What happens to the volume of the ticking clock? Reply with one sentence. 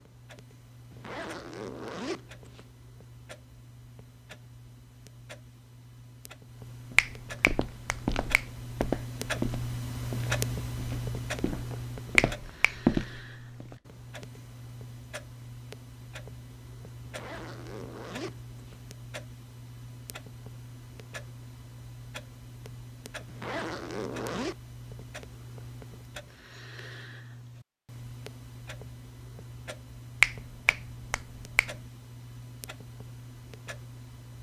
The loudness of the ticking clock goes up, then down.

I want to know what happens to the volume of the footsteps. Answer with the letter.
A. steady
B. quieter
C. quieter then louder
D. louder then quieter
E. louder
C.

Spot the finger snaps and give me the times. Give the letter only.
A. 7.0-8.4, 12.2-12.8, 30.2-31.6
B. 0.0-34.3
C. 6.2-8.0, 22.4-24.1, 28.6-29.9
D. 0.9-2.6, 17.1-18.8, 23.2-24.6
A.